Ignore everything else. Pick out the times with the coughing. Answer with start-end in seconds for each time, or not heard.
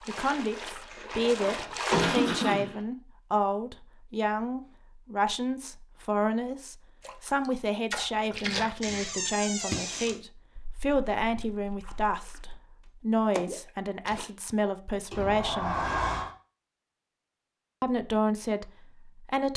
1.4-2.8.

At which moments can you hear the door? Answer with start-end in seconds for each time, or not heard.
0.9-2.3, 8.8-10.2, 15.1-16.3.